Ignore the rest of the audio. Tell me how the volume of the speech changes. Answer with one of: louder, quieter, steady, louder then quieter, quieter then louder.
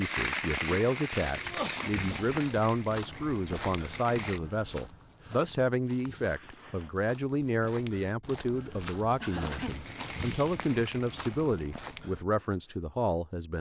steady.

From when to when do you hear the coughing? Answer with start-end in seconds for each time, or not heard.
1.4-2.2, 6.0-7.0, 9.2-9.8.